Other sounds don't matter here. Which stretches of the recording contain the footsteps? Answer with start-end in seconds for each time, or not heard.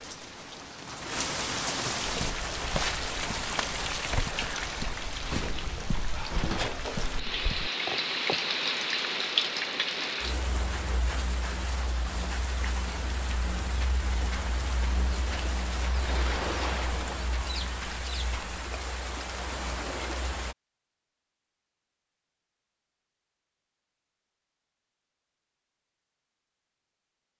2.2-8.4.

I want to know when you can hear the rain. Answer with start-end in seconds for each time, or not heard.
0.0-20.6.